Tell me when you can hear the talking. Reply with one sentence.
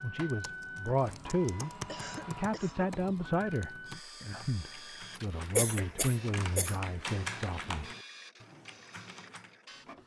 You can hear the talking from 0.0 to 7.9 s.